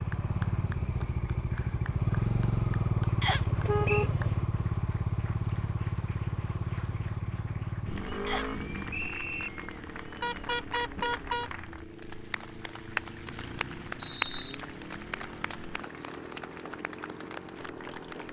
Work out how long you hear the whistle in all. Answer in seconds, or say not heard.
3 s.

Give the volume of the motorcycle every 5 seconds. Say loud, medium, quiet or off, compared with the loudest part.
loud, medium, quiet, quiet.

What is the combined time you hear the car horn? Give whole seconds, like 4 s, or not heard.
2 s.